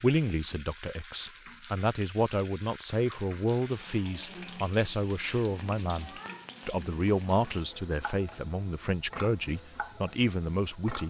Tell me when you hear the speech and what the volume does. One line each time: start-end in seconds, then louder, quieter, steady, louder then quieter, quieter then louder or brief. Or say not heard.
0.0-11.0 steady.